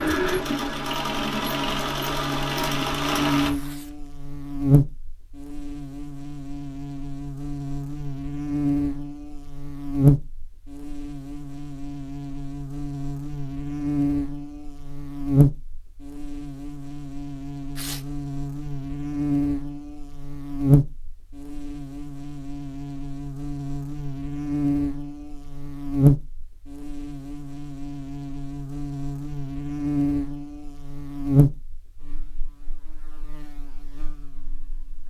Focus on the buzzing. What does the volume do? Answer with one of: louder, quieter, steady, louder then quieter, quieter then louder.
steady.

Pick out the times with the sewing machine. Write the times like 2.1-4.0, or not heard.
0.0-3.5.